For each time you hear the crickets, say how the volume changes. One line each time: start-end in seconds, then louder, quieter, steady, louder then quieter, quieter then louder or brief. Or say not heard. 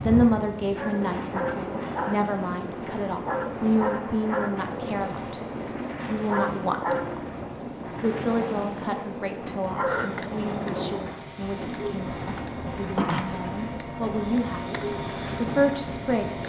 0.0-16.4 steady.